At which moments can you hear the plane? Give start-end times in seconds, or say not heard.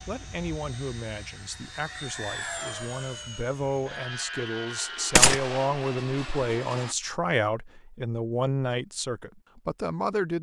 0.0-7.0.